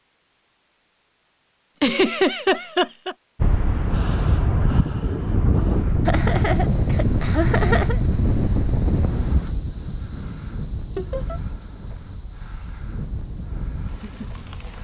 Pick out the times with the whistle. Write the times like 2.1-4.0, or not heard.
not heard.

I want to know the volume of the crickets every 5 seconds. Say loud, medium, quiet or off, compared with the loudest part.
off, loud, medium.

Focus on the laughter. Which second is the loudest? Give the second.
2 s.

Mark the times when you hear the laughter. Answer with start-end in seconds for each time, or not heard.
1.8-3.1, 6.0-8.0, 10.9-11.4.